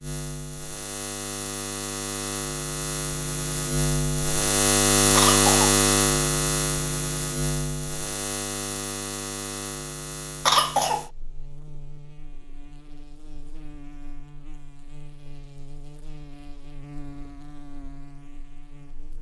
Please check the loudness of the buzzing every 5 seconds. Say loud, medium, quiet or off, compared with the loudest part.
loud, loud, quiet, quiet.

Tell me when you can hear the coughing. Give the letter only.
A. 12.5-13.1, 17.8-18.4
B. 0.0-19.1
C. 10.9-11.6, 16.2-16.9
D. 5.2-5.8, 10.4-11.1
D.